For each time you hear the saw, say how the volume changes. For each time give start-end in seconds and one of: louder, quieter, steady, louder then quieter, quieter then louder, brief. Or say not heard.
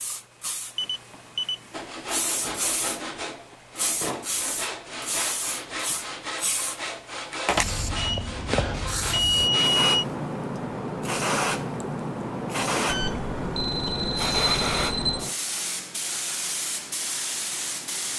1.7-9.8 steady.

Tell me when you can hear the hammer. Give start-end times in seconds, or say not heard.
not heard.